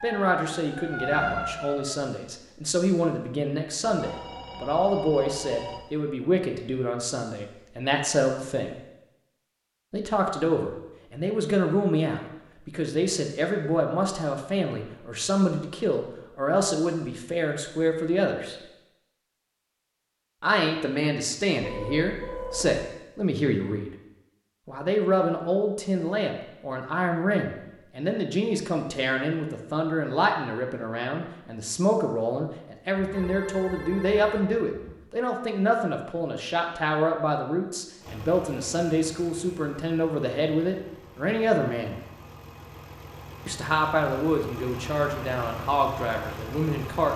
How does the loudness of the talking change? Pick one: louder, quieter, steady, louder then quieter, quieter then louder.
steady.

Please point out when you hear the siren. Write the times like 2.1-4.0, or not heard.
0.0-1.9.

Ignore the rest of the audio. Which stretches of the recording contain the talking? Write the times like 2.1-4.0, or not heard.
0.0-8.8, 9.9-18.6, 20.4-23.9, 24.6-42.0, 43.5-47.1.